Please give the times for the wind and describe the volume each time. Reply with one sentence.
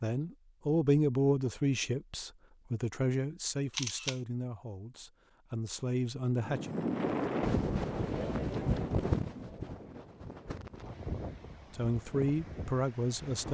You can hear the wind from 6.3 to 13.4 s, getting quieter.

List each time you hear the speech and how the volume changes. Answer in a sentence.
The speech can be heard from 0.0 to 6.8 s, getting quieter then louder; and briefly from 11.7 to 13.4 s.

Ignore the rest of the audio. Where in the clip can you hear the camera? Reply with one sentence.
You can hear the camera from 3.7 to 4.2 s.